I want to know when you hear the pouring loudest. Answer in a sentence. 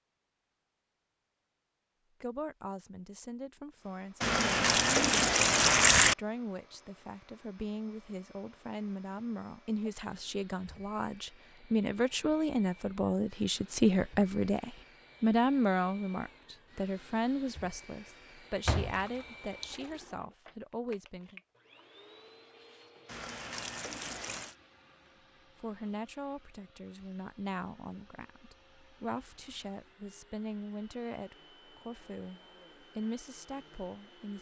The volume of the pouring peaks at 6 seconds.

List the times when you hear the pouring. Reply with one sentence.
You can hear the pouring from 4.2 to 6.2 s, from 18.9 to 20.1 s and from 23.1 to 24.6 s.